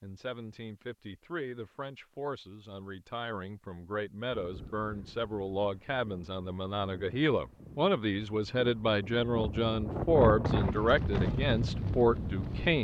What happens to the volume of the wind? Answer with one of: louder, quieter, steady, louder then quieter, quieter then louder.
louder.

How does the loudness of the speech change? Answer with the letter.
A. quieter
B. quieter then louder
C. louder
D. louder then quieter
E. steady
C.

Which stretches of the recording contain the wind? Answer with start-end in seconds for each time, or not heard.
4.3-12.7.